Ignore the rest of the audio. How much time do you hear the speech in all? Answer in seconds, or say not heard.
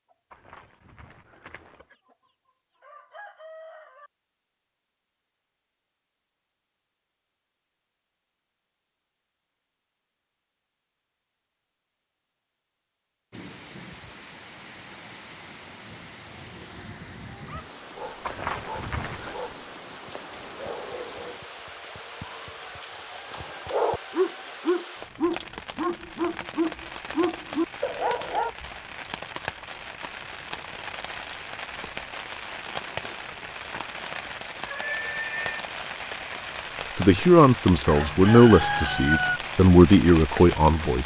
4 s.